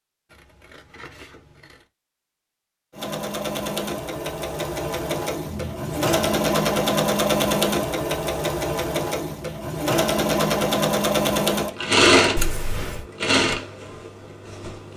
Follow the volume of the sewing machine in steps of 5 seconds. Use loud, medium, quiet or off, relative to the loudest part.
medium, loud, loud.